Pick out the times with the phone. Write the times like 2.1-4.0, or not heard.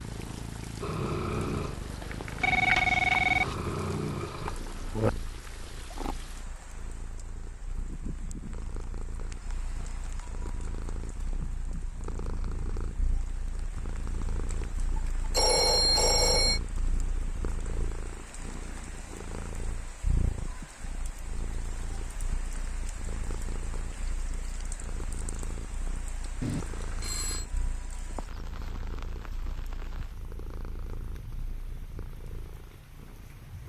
2.4-3.5, 15.3-16.6, 26.4-27.4.